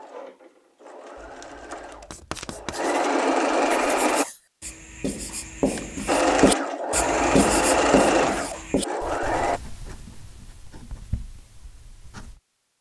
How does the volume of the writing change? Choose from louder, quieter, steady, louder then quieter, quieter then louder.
louder then quieter.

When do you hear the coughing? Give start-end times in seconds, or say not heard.
not heard.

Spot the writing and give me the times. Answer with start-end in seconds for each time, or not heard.
2.1-12.4.